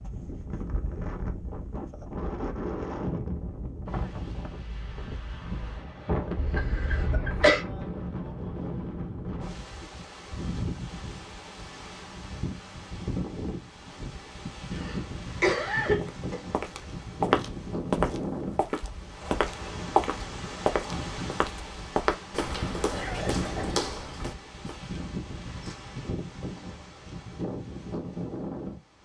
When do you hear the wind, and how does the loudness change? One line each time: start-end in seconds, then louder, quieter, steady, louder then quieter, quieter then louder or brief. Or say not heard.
0.0-29.0 steady.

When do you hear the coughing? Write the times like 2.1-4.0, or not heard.
6.3-7.7, 14.8-16.4, 22.9-23.8.